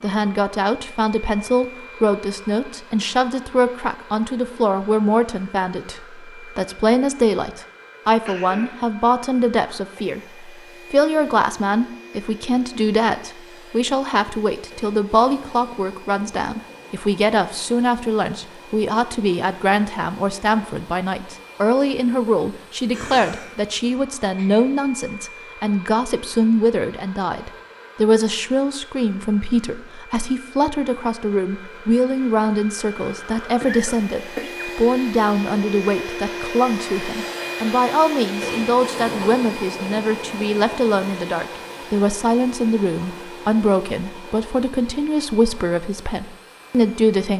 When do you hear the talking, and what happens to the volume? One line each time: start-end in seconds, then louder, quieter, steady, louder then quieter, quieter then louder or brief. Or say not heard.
0.0-47.3 steady.